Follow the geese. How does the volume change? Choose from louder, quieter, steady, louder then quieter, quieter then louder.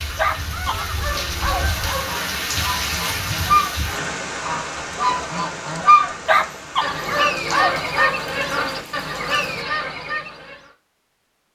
louder then quieter.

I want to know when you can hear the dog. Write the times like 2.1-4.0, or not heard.
0.1-2.1, 6.2-8.2.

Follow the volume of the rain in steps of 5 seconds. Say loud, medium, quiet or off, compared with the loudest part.
loud, medium, off.